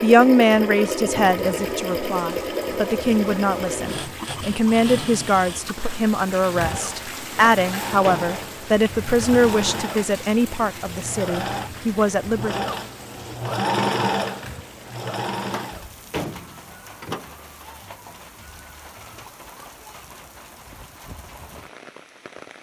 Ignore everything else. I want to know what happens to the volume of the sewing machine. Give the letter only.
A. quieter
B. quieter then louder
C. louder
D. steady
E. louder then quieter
B.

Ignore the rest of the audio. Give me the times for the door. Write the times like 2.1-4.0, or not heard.
7.3-8.4, 15.4-17.4.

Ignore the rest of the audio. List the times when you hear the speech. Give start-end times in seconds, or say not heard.
0.0-12.7.